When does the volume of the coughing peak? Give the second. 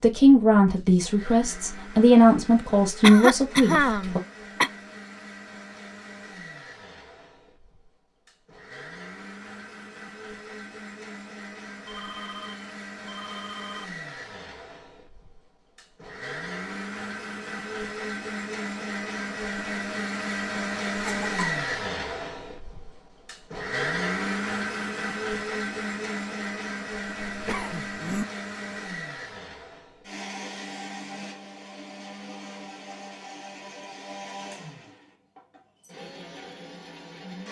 3 s.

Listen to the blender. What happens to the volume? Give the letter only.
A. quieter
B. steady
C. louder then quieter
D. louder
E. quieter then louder
C.